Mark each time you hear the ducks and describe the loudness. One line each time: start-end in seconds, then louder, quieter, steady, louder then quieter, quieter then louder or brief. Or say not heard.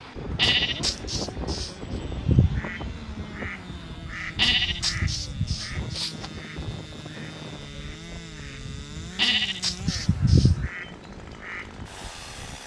2.2-11.8 quieter then louder.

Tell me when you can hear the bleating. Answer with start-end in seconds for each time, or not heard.
0.3-1.8, 4.3-6.3, 9.2-10.6.